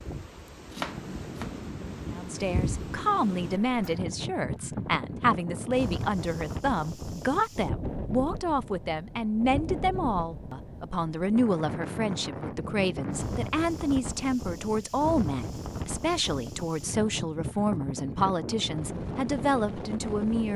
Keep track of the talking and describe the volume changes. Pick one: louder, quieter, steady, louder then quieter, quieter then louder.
steady.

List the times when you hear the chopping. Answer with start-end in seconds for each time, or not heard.
0.7-1.6.